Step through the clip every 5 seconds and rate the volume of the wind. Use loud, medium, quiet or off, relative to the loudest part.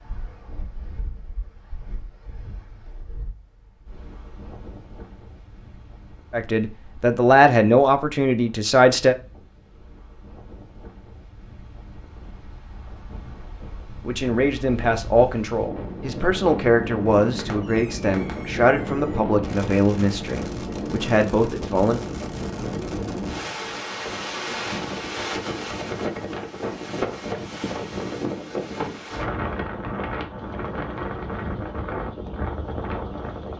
quiet, quiet, quiet, loud, loud, loud, loud.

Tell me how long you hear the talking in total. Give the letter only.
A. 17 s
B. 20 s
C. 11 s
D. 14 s
C.